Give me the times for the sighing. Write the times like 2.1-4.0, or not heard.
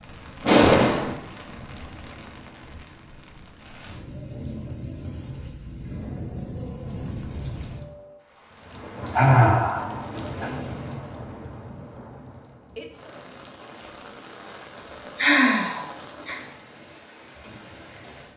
0.4-1.1, 9.1-10.6, 15.2-16.4.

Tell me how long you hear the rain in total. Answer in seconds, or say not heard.
18 s.